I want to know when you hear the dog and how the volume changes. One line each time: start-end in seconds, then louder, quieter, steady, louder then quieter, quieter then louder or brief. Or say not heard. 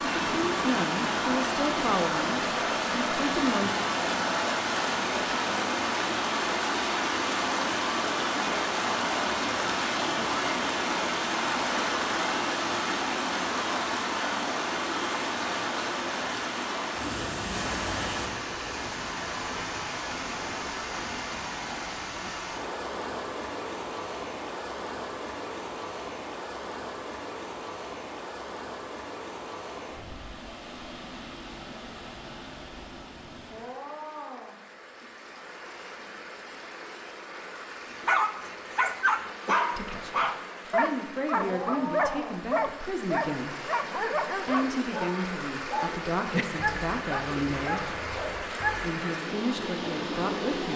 38.0-48.9 quieter.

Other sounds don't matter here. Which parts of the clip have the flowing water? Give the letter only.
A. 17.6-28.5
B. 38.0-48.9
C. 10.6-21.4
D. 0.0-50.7
D.